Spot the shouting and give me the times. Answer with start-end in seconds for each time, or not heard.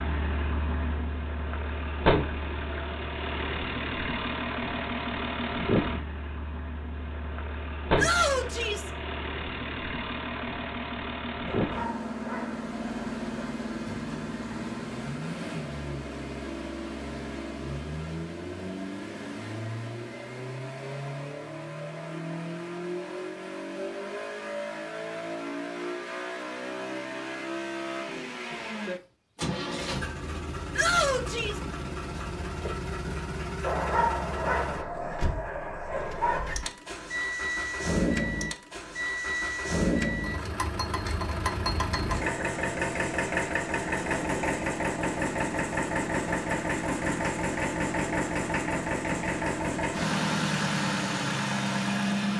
8.0-8.9, 30.8-31.6.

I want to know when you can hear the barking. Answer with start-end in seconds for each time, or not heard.
11.4-13.6, 33.6-36.5.